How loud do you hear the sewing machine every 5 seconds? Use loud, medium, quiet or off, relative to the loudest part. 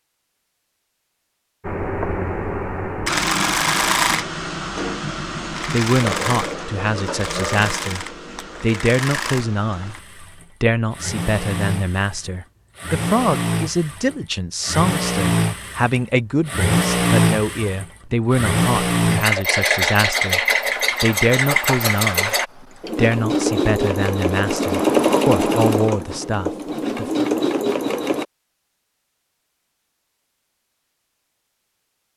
loud, medium, medium, loud, loud, loud, off.